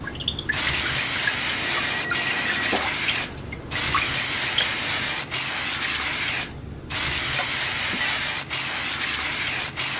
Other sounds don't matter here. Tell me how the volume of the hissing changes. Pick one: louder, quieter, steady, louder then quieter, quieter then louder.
steady.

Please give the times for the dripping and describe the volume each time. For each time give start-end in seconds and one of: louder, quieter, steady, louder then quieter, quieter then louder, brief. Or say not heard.
0.0-5.4 steady.